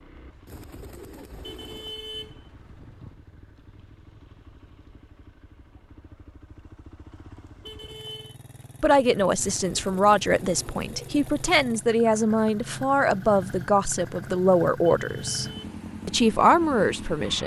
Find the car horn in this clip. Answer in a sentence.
The car horn can be heard from 1.4 to 3.1 s, from 7.6 to 8.3 s and from 14.9 to 15.8 s.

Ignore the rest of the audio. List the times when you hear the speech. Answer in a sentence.
The speech can be heard from 8.8 to 15.4 s and from 16.1 to 17.4 s.